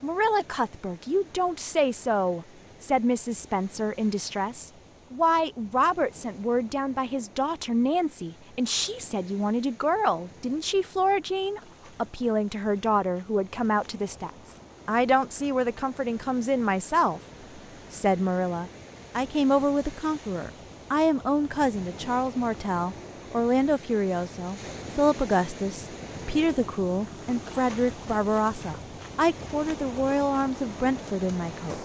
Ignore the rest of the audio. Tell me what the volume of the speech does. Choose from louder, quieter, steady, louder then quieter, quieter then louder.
steady.